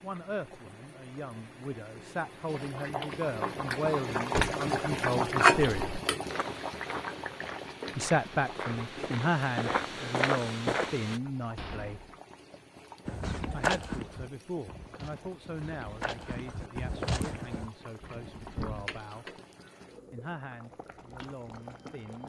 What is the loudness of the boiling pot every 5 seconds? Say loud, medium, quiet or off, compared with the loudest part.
medium, loud, quiet, quiet, quiet.